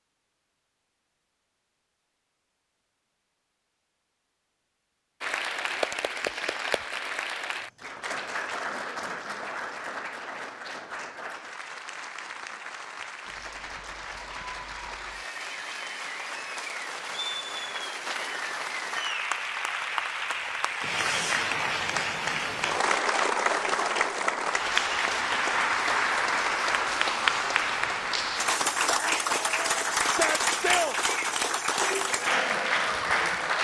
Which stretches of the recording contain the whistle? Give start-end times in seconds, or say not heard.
not heard.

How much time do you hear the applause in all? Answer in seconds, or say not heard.
28 s.